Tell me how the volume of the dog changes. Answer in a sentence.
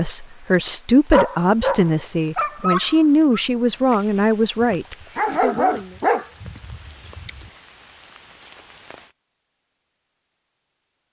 The volume of the dog goes down, then up.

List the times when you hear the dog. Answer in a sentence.
You can hear the dog from 1.1 to 7.3 s.